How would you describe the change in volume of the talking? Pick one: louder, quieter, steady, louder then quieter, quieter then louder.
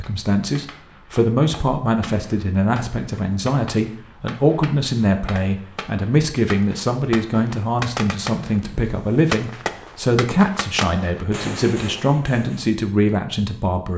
steady.